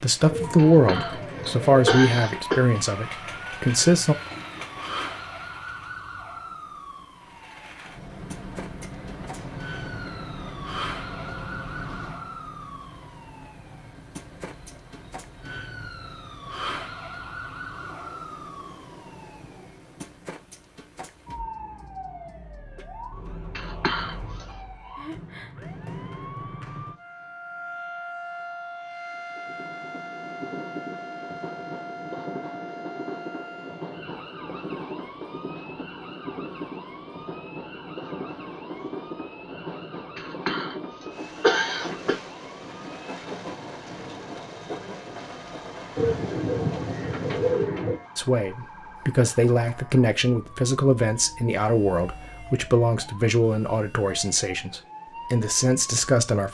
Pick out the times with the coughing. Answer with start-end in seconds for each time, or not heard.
0.6-2.6, 23.6-24.6, 40.1-42.1.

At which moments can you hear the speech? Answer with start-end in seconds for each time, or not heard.
0.0-4.2, 48.1-56.4.